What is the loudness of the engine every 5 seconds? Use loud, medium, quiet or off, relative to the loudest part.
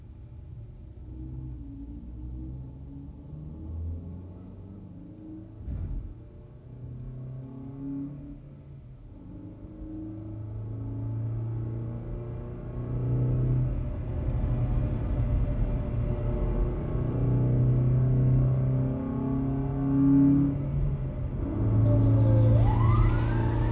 quiet, quiet, medium, loud, loud.